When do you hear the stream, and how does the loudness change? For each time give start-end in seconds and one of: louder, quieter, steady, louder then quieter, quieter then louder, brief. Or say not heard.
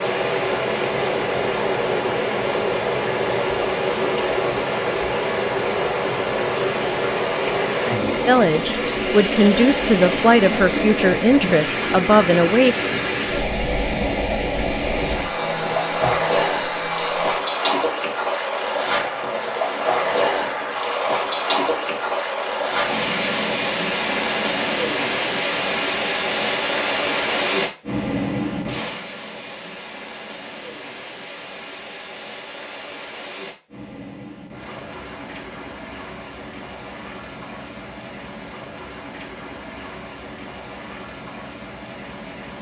0.0-42.5 quieter.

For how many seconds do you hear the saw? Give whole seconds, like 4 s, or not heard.
3 s.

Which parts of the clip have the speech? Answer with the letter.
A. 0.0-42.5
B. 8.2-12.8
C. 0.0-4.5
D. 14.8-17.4
B.